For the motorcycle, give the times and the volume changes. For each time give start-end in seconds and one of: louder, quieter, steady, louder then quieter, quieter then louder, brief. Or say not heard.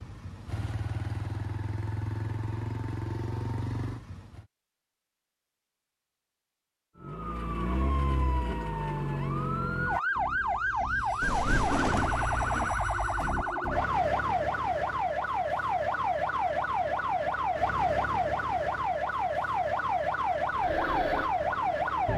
0.0-4.5 steady
20.5-21.9 brief.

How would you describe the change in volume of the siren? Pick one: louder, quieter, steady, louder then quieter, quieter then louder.
steady.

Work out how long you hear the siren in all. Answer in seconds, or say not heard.
15 s.